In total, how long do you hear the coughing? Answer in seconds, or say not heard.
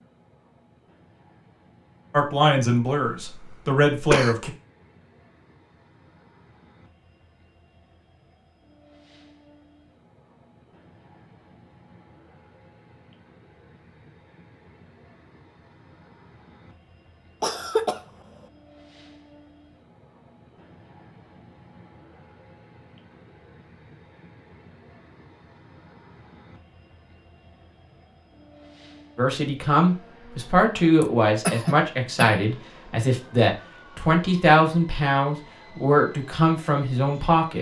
3 s.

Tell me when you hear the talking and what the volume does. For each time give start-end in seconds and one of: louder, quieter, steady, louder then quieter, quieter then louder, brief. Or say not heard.
2.1-4.5 brief
29.1-37.5 steady.